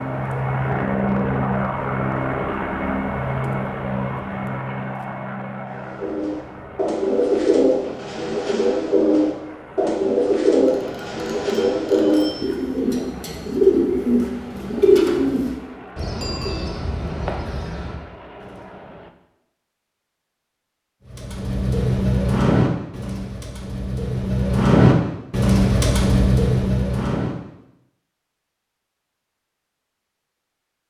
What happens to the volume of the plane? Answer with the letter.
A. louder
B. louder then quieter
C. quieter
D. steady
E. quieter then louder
C.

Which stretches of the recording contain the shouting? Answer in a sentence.
The shouting can't be heard in this clip.